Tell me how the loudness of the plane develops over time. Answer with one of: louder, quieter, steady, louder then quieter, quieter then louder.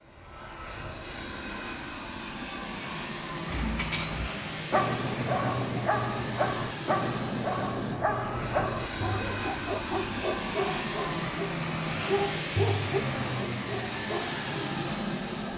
louder.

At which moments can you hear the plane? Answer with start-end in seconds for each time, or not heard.
0.0-15.5.